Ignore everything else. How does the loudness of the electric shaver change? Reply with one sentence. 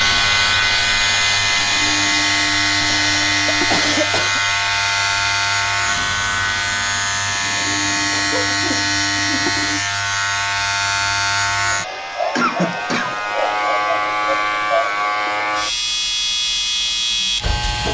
The volume of the electric shaver stays about the same.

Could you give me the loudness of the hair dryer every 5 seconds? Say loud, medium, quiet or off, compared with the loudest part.
loud, medium, quiet, quiet.